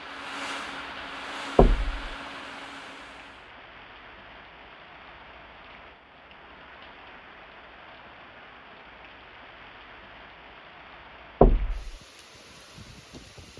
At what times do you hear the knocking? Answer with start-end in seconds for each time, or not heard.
1.6-2.0, 11.4-11.9.